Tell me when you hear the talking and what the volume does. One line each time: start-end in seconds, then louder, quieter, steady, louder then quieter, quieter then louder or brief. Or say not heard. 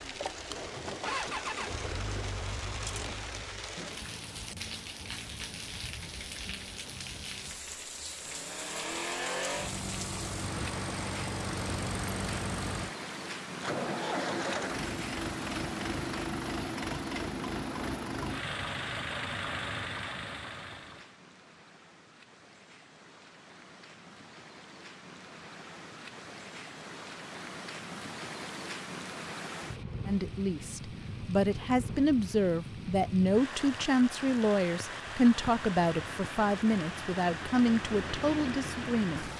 30.1-39.3 steady.